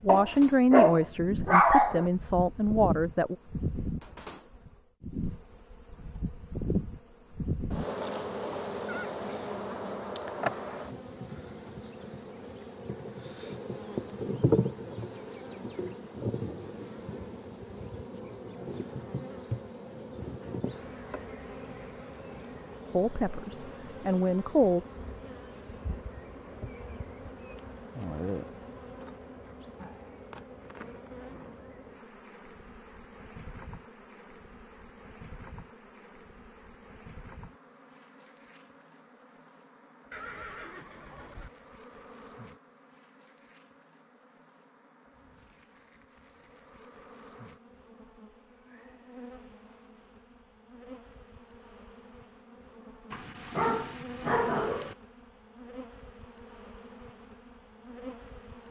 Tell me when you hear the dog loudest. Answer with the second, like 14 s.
2 s.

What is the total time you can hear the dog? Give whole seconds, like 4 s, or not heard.
4 s.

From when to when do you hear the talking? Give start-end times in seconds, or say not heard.
0.0-3.4, 22.9-24.8.